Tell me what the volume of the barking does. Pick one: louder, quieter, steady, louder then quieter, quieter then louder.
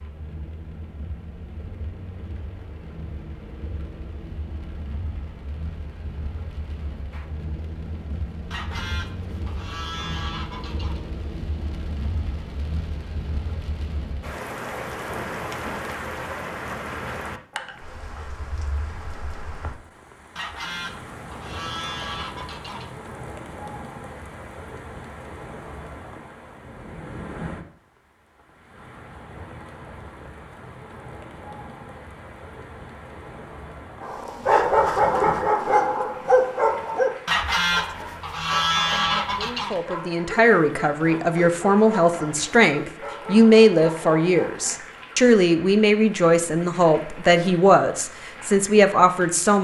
quieter.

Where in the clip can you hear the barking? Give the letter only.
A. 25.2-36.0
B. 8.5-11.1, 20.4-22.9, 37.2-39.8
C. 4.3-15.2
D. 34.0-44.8
D.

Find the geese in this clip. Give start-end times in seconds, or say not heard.
8.5-11.1, 20.4-22.9, 37.2-39.8.